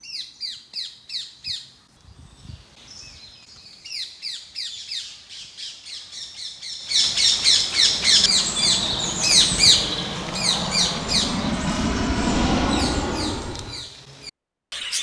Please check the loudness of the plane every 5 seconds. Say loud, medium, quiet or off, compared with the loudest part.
off, medium, loud.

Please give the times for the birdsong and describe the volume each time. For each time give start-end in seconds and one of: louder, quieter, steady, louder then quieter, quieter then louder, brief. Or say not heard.
0.0-14.9 louder then quieter.